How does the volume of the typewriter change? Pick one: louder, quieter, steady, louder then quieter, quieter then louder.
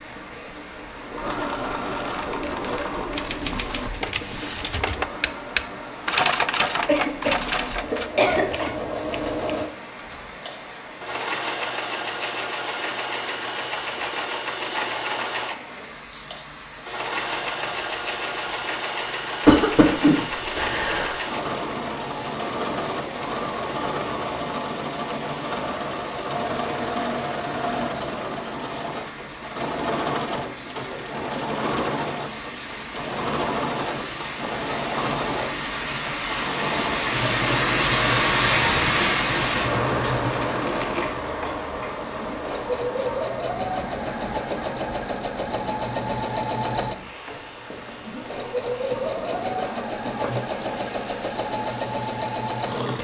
louder then quieter.